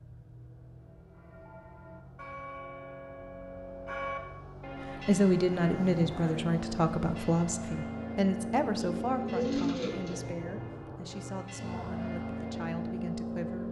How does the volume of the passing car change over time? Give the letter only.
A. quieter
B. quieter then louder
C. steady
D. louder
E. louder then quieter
D.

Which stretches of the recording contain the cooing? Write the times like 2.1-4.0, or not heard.
8.7-10.2.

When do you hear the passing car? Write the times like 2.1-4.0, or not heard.
0.0-13.6.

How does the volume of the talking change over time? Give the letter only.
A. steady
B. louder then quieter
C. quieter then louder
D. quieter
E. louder
D.